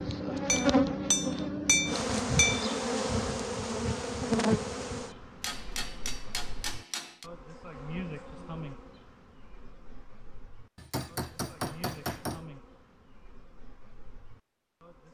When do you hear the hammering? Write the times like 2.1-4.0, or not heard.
0.5-2.7, 5.4-7.2, 10.8-12.4.